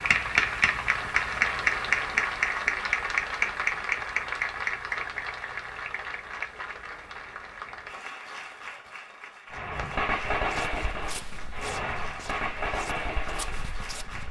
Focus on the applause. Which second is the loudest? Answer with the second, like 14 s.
2 s.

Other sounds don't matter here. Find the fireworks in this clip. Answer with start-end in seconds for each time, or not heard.
9.5-14.2.